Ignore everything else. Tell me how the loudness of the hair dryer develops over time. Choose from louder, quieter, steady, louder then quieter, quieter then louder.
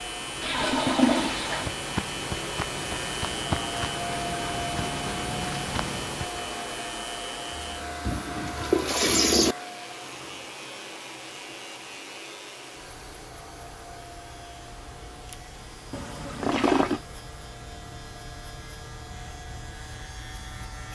quieter.